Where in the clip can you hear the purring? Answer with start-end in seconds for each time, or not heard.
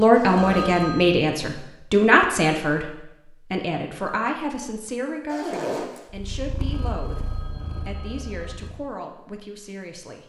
6.1-8.8.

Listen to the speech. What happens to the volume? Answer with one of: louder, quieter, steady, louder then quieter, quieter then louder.
quieter.